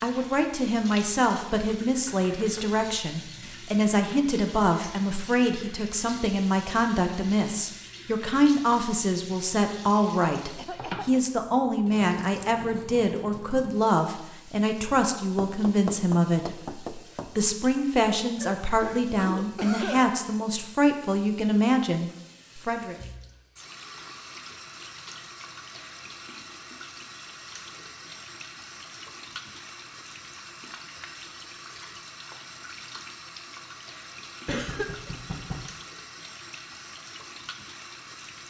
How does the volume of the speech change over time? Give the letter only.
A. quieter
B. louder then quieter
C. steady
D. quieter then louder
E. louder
C.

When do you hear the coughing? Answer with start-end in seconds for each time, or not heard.
10.6-11.2, 18.4-20.1, 34.5-35.1.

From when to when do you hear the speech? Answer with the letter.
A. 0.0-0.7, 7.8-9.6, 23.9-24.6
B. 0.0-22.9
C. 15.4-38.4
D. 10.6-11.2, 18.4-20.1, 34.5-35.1
B.